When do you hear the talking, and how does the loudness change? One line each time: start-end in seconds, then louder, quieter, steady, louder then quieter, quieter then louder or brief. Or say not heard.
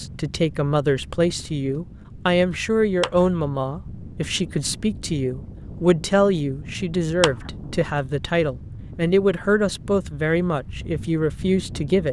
0.0-12.0 steady.